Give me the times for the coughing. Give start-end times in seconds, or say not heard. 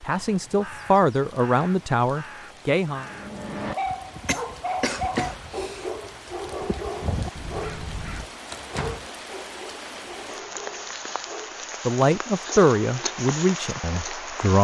4.2-5.9.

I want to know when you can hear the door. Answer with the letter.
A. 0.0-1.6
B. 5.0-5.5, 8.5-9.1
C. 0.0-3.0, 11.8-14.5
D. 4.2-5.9
B.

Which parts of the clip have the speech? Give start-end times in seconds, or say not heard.
0.0-3.0, 11.8-14.5.